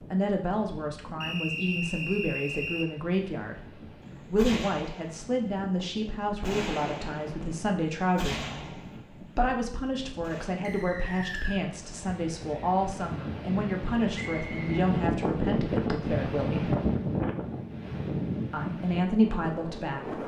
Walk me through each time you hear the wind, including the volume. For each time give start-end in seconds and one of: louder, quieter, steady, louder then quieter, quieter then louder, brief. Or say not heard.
0.0-20.2 louder.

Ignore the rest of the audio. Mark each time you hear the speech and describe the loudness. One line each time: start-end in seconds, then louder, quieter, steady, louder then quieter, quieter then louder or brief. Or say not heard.
0.0-16.8 steady
18.5-20.2 brief.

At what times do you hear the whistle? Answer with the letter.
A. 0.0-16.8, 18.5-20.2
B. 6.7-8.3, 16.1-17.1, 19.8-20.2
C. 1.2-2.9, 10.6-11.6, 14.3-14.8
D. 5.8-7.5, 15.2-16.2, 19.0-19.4
C.